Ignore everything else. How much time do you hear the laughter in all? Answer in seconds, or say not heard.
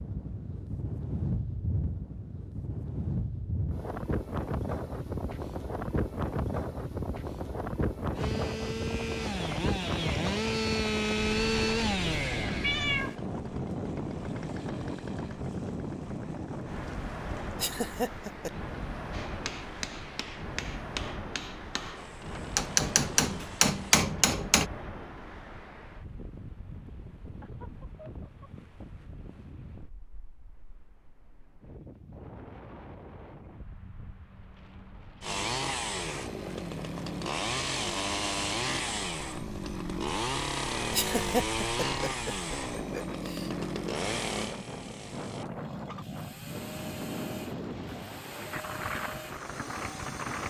4 s.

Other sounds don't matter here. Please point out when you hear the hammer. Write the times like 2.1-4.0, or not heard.
19.1-24.7.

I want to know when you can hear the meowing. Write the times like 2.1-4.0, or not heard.
12.6-13.2.